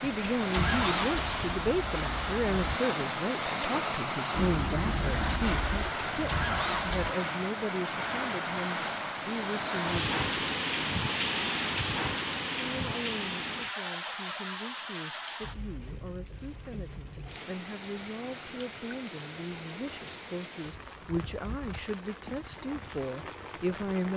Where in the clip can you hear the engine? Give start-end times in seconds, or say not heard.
0.0-2.8, 4.3-7.1.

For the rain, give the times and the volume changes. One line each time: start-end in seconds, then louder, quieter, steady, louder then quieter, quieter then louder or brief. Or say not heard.
0.0-24.1 quieter.